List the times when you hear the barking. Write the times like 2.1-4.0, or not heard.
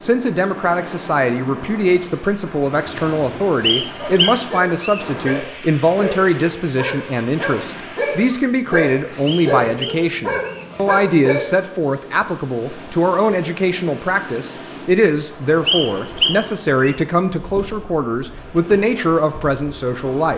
4.0-11.5.